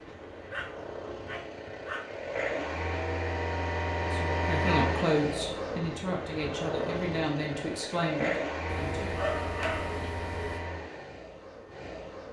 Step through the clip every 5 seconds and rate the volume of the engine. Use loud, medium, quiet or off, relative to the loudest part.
loud, loud, medium.